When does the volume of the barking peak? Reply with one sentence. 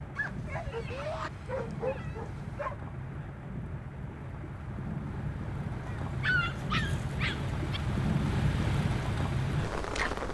The volume of the barking peaks at 6 seconds.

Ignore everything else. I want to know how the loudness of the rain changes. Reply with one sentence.
The loudness of the rain goes up.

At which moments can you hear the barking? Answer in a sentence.
The barking can be heard from 0.1 to 2.8 s and from 5.8 to 7.8 s.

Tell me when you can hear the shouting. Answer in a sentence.
The shouting can be heard from 0.9 to 1.3 s.